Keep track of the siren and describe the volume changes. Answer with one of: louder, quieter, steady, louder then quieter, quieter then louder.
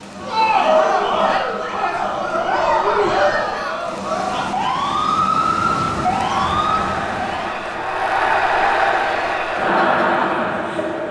louder then quieter.